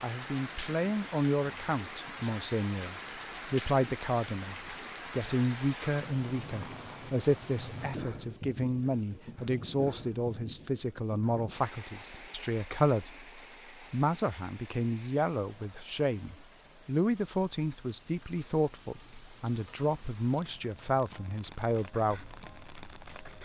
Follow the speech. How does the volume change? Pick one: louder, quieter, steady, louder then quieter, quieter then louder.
steady.